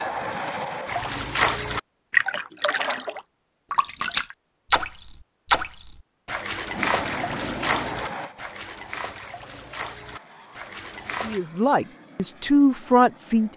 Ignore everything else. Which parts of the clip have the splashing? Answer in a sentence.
The splashing can be heard from 0.8 to 11.4 s.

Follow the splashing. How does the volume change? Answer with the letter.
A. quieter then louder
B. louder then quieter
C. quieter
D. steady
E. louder
C.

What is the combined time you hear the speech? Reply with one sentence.
The speech can be heard for 2 seconds in total.